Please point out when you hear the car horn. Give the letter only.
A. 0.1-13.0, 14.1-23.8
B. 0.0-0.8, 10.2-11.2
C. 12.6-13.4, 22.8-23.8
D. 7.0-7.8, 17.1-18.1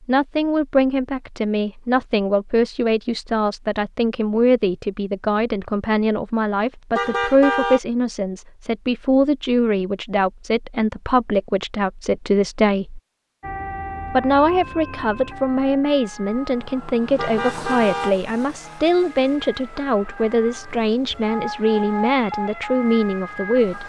D.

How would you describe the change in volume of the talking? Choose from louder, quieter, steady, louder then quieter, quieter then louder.
steady.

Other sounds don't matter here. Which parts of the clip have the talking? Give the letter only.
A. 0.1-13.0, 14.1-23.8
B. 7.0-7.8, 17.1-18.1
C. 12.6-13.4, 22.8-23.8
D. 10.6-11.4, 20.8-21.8
A.